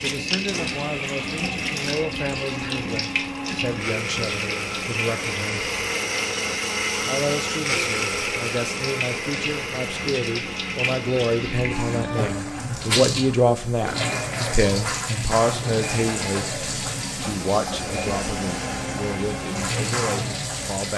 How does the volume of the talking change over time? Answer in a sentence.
The loudness of the talking goes up, then down.